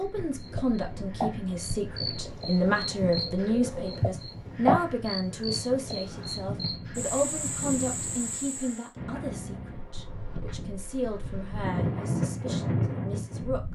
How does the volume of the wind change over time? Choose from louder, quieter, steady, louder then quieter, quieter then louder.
louder.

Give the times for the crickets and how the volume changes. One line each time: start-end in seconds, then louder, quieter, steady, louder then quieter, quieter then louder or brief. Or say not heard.
0.0-8.9 louder then quieter.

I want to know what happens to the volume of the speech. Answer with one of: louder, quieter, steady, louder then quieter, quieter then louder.
quieter.